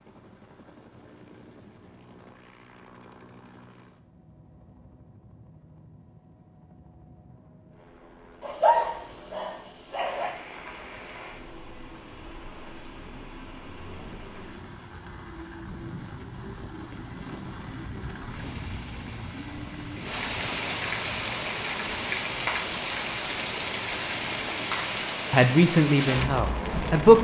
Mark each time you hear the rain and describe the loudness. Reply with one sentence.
You can hear the rain from 9.9 to 27.1 s, getting louder.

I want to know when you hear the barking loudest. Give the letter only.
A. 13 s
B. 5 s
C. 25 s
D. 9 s
D.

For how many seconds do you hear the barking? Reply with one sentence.
The barking can be heard for 2 seconds in total.